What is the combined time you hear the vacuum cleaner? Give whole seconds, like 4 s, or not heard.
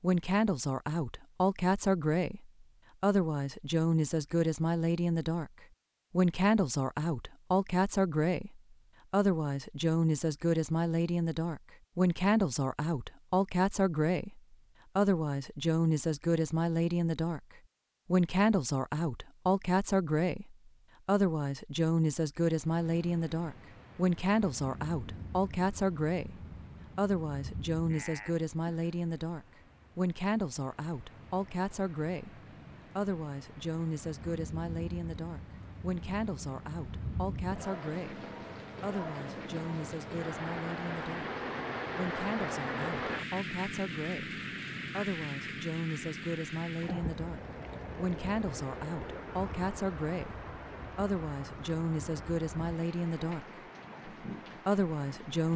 not heard.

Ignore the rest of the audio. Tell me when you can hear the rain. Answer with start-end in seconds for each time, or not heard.
22.4-55.5.